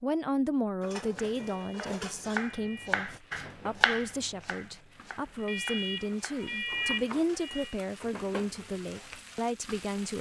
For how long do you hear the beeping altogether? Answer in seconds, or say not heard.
4 s.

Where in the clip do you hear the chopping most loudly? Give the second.
4 s.